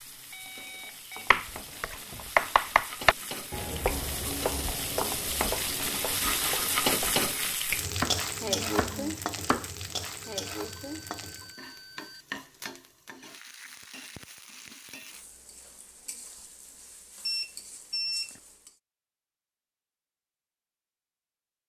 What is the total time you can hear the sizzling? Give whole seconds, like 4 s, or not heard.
19 s.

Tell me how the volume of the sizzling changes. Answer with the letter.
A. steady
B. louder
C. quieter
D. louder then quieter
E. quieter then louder
D.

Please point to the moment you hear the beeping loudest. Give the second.
18 s.